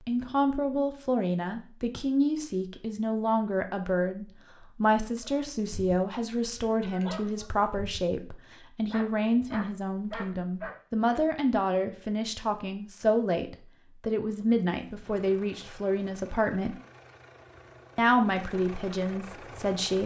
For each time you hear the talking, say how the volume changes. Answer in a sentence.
You can hear the talking from 0.1 to 16.8 s, at a steady volume; and briefly from 17.9 to 20.0 s.